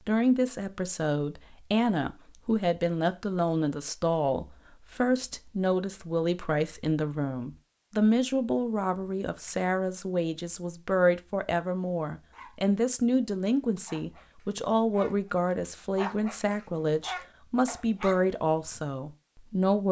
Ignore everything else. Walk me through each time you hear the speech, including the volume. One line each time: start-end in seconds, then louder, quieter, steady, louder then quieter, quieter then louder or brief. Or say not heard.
0.1-19.8 steady.